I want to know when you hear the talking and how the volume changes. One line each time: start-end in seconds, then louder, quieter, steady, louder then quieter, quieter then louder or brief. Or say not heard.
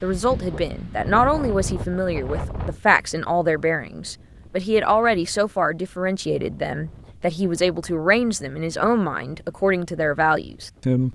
0.0-11.1 steady.